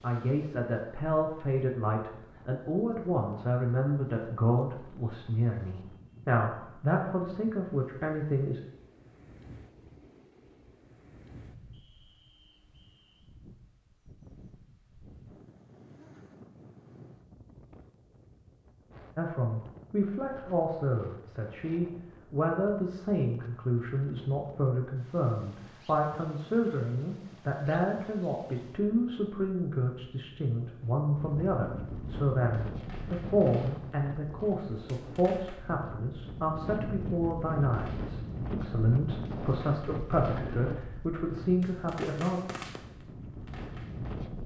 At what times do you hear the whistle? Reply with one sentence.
You can hear the whistle from 11.7 to 13.3 s.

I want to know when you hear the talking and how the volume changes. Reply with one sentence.
You can hear the talking from 0.0 to 8.6 s, at a steady volume; and from 19.1 to 42.4 s, at a steady volume.